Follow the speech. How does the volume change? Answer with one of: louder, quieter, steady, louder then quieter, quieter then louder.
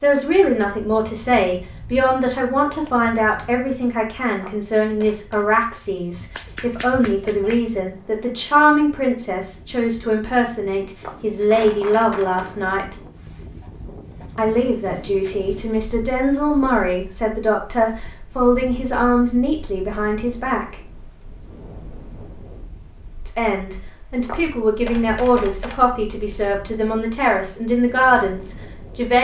steady.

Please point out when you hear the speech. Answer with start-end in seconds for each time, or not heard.
0.0-12.9, 14.3-20.8, 23.2-29.2.